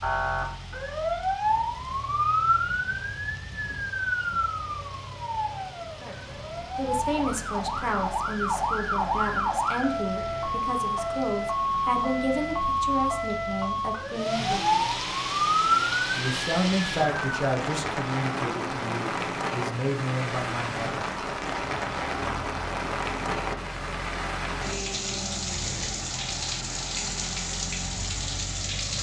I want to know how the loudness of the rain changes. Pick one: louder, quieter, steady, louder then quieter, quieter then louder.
louder.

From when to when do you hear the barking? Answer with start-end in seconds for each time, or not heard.
not heard.